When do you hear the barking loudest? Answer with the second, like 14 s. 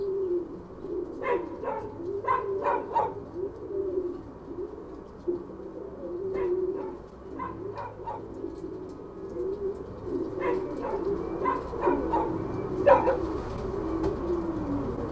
13 s.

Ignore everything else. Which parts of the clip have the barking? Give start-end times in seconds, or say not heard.
1.2-3.1, 6.3-8.2, 10.3-13.2.